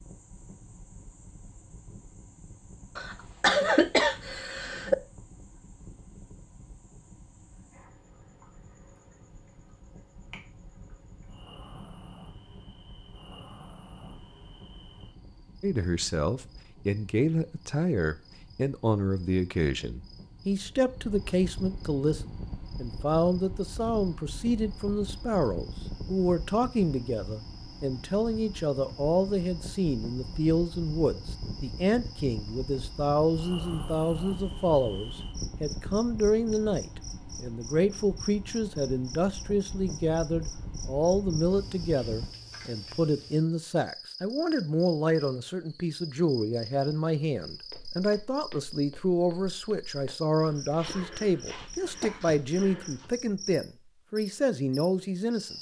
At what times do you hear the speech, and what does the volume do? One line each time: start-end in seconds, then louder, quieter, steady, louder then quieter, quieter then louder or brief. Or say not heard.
15.6-55.5 steady.